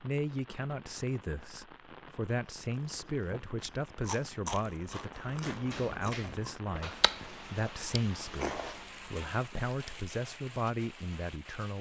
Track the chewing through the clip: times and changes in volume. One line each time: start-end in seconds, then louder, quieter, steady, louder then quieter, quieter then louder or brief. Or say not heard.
2.5-9.9 steady.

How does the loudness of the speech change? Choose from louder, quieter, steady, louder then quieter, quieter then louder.
steady.